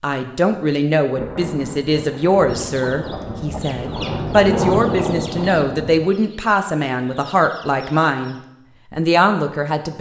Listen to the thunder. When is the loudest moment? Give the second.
5 s.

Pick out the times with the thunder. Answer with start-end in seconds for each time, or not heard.
1.1-6.0.